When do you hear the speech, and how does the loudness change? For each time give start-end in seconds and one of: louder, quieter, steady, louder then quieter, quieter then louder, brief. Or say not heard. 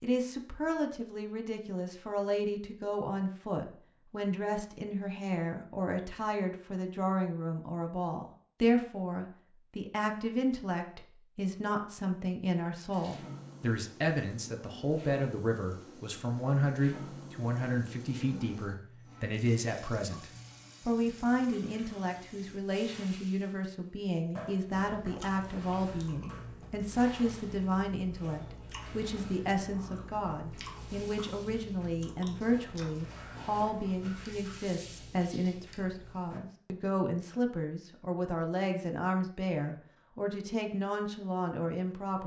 0.0-42.2 steady.